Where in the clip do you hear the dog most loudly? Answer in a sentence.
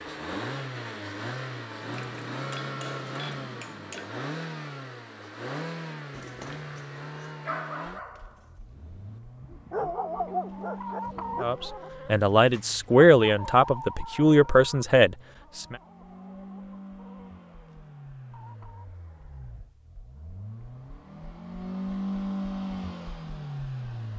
The volume of the dog peaks at 10 seconds.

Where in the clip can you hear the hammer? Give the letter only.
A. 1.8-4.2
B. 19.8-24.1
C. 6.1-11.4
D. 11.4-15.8
A.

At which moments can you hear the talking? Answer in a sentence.
You can hear the talking from 11.4 to 15.8 s.